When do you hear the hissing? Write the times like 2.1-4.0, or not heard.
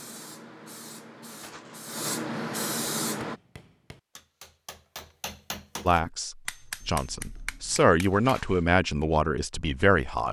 0.0-3.4.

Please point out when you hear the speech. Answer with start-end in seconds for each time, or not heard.
5.8-10.2.